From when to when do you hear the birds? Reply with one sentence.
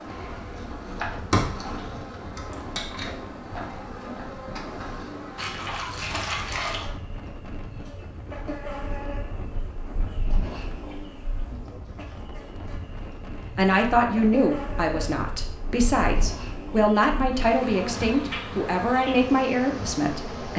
The birds can't be heard in this clip.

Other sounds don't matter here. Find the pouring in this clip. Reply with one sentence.
You can hear the pouring from 5.3 to 7.0 s.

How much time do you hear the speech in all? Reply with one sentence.
The speech can be heard for 7 seconds in total.